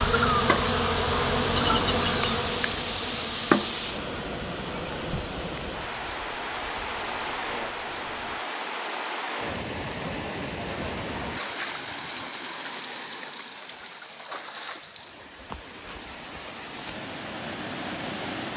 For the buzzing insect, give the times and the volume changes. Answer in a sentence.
You can hear the buzzing insect from 0.0 to 8.4 s, getting quieter.